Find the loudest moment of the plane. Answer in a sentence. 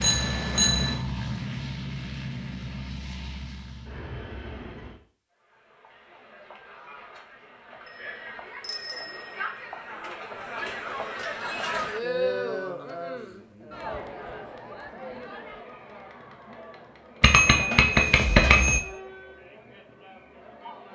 The volume of the plane peaks at 1 second.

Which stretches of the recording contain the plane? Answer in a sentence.
The plane can be heard from 0.0 to 5.0 s.